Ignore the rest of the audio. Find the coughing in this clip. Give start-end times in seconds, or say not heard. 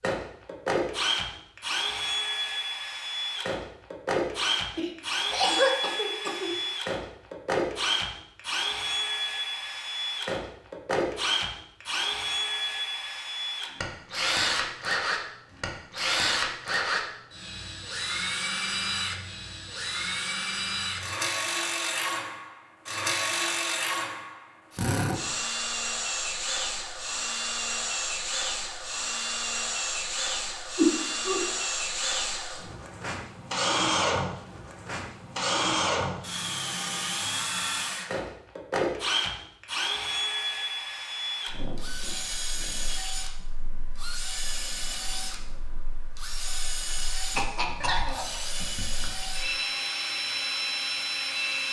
4.8-6.5, 30.8-31.4, 47.4-48.4.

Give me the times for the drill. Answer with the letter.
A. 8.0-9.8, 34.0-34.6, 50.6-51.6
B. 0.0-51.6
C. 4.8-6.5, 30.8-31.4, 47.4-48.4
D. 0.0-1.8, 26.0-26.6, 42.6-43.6
B.